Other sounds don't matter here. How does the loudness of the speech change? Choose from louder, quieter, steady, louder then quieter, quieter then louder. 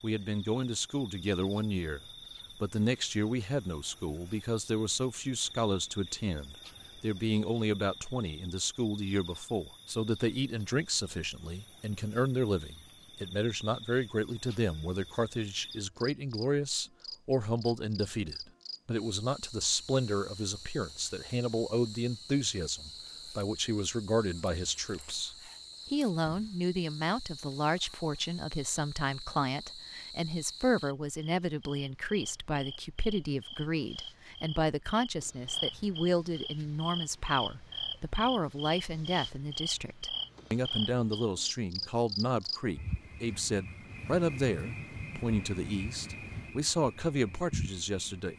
steady.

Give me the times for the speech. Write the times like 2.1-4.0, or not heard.
0.0-48.3.